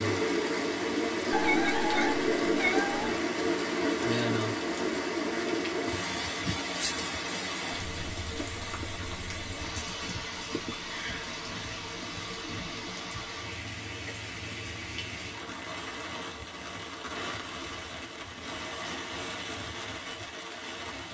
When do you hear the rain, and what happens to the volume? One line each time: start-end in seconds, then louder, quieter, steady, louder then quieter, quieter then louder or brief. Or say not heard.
0.0-21.0 quieter.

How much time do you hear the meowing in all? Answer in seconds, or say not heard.
2 s.